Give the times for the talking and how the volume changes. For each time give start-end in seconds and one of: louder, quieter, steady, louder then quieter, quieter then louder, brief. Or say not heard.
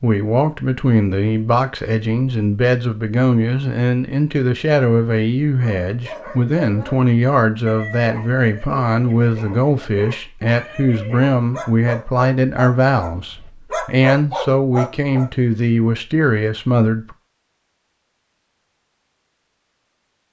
0.0-17.1 steady.